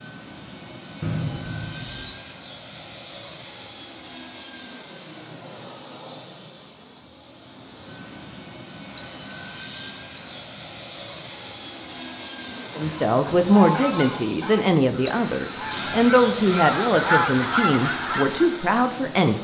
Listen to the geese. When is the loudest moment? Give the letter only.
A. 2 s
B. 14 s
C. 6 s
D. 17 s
D.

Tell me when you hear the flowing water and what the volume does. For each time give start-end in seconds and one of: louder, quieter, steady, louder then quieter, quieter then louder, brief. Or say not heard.
not heard.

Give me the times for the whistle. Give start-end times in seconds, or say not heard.
1.0-2.1, 8.9-10.6, 15.1-15.8.